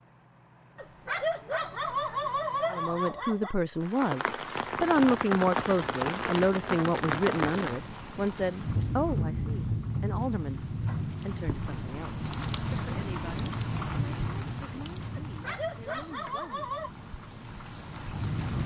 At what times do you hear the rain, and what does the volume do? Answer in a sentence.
You can hear the rain from 3.8 to 18.6 s, getting quieter.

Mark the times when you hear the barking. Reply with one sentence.
You can hear the barking from 0.8 to 3.5 s and from 15.2 to 16.9 s.